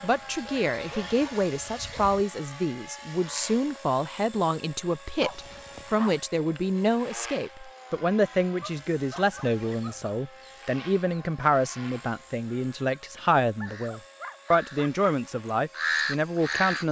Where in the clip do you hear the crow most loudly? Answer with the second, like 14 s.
16 s.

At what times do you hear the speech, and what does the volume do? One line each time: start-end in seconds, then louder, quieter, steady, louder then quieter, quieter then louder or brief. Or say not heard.
0.0-16.8 steady.